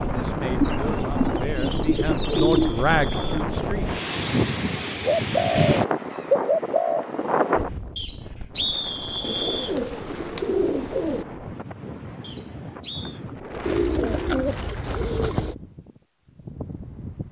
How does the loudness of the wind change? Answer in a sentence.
The volume of the wind goes down.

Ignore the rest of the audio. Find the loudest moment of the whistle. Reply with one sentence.
The volume of the whistle peaks at 9 seconds.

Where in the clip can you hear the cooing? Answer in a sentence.
You can hear the cooing from 0.6 to 2.7 s, from 5.0 to 7.0 s, from 9.2 to 11.2 s and from 13.7 to 15.6 s.